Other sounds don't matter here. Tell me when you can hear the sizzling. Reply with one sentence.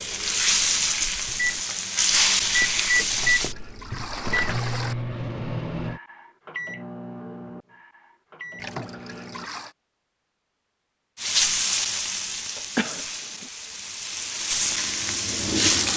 You can hear the sizzling from 0.0 to 3.5 s and from 11.2 to 15.9 s.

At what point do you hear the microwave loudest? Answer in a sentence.
The volume of the microwave peaks at 3 seconds.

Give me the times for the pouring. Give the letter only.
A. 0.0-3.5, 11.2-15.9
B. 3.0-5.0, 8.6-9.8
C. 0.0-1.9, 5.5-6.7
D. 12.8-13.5
B.